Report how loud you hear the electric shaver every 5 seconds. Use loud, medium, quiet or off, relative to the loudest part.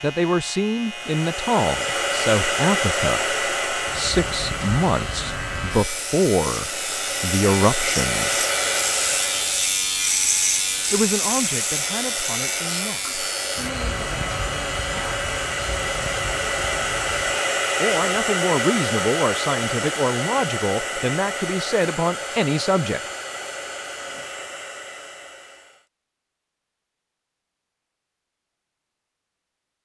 medium, loud, loud, medium, off, off.